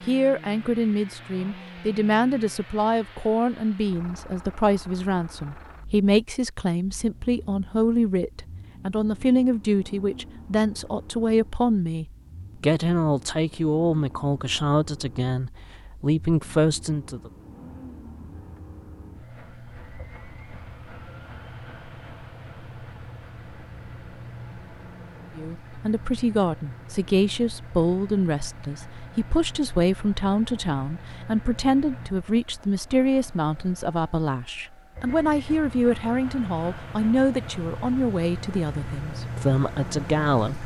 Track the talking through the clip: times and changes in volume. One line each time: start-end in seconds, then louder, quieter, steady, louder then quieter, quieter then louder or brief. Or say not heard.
0.0-17.3 steady
25.4-40.6 steady.